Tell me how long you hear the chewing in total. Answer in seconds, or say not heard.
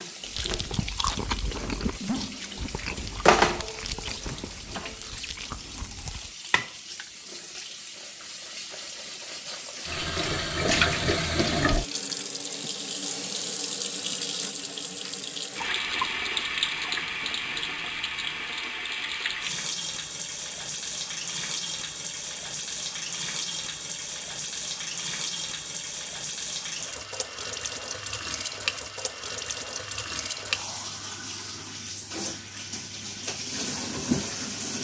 6 s.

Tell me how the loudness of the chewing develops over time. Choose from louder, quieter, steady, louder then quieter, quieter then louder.
quieter.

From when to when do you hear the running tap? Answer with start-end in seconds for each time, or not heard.
0.0-34.7.